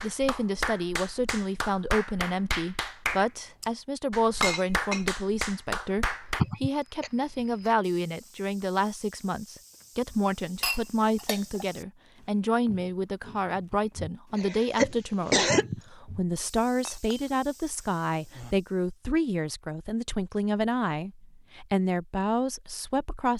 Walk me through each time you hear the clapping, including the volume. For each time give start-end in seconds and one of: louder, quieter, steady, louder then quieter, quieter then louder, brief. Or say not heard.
0.0-6.5 steady.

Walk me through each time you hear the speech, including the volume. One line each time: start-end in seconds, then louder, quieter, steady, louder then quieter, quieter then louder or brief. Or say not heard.
0.0-23.3 steady.